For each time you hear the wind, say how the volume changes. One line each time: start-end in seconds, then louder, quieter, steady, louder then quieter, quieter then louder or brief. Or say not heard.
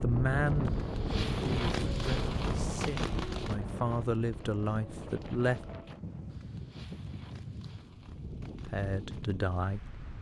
0.0-10.1 quieter.